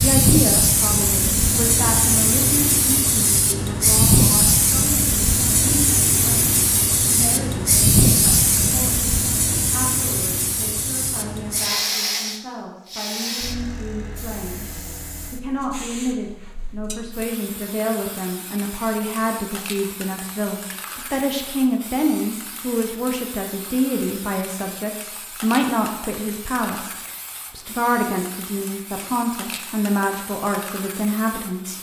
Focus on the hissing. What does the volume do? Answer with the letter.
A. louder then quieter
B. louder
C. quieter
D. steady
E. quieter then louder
C.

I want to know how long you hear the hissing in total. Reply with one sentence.
You can hear the hissing for 32 seconds altogether.